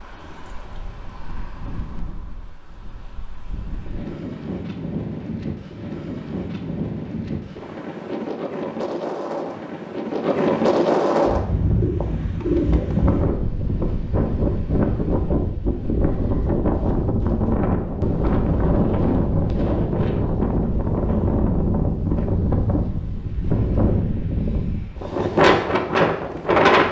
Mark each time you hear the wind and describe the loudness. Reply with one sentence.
The wind can be heard from 0.0 to 26.8 s, getting louder.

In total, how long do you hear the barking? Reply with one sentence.
You can't hear the barking here.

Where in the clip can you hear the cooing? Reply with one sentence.
The cooing can be heard from 11.8 to 13.2 s.